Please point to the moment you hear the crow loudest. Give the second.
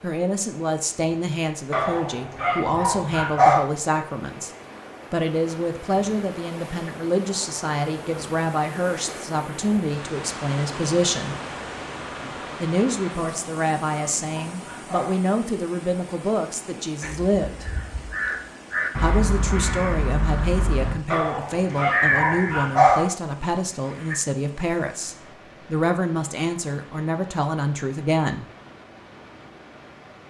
22 s.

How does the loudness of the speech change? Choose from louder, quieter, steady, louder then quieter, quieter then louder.
steady.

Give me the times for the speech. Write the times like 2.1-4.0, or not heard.
0.0-4.5, 5.1-11.3, 12.6-17.6, 19.0-28.4.